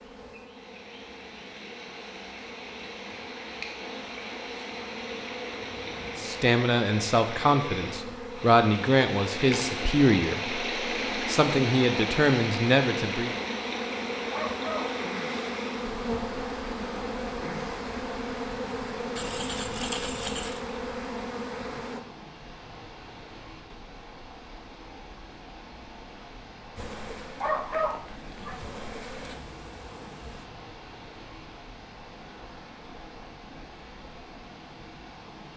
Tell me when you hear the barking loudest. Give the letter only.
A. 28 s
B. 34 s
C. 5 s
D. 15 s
A.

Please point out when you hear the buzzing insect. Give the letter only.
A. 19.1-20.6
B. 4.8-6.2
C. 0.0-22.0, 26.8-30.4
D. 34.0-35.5
C.